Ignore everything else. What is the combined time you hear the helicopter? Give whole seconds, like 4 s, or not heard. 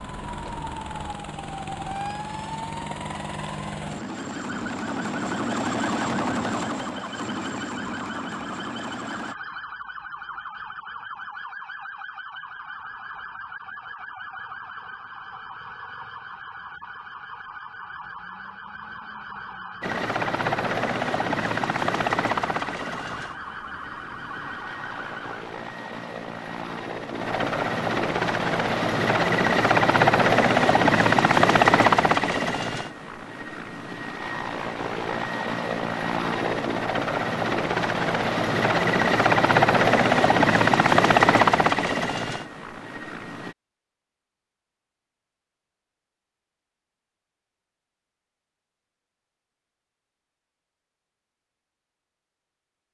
33 s.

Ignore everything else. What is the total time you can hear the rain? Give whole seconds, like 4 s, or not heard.
not heard.